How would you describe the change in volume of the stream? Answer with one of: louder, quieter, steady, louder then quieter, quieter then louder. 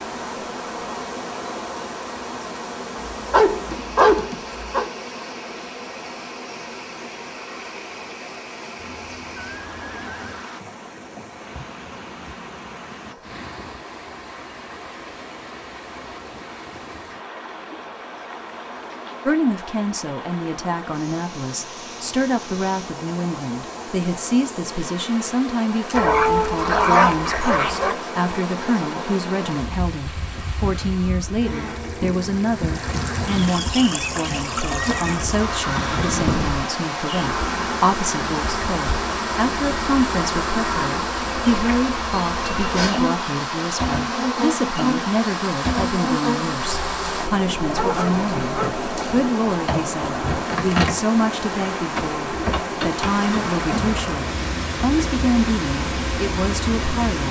louder.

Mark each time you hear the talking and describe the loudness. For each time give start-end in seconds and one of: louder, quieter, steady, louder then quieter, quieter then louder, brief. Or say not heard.
19.2-57.2 steady.